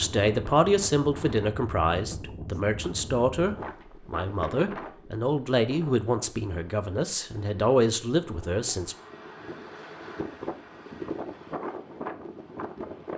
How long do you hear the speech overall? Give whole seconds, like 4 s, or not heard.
9 s.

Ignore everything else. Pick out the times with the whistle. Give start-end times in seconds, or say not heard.
not heard.